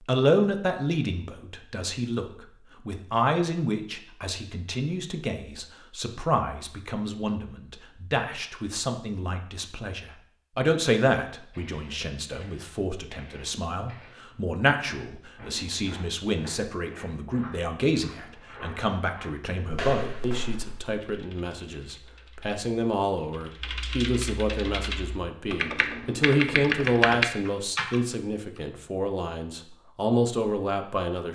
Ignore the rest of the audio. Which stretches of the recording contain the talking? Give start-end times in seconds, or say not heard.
0.0-31.3.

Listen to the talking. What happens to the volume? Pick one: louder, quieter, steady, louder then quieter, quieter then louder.
steady.